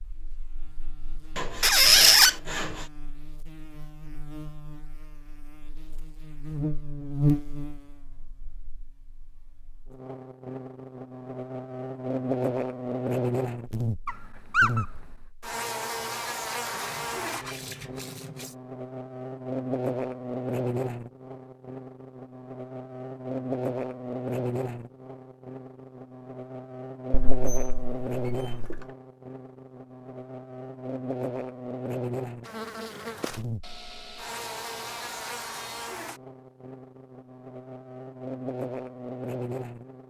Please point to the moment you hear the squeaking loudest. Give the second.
2 s.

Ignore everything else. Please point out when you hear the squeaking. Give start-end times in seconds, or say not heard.
1.6-2.3, 14.1-14.8, 27.1-28.9.